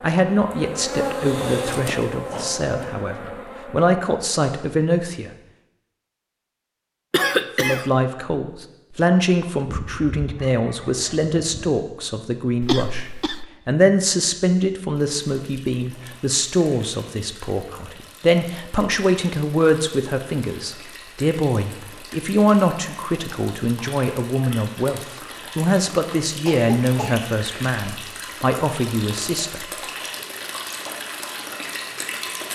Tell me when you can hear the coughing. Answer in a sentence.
The coughing can be heard from 7.1 to 7.8 s, from 12.6 to 13.4 s and from 26.4 to 27.2 s.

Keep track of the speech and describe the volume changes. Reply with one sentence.
The volume of the speech stays about the same.